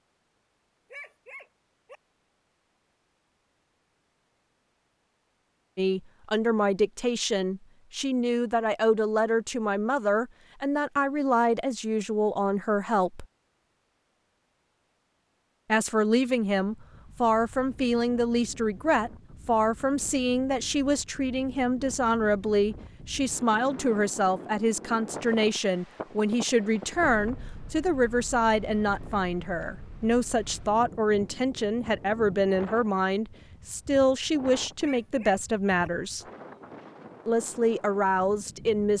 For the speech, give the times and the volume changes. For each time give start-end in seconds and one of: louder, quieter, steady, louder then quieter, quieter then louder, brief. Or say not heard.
5.8-13.2 steady
15.7-36.2 steady
37.2-38.9 brief.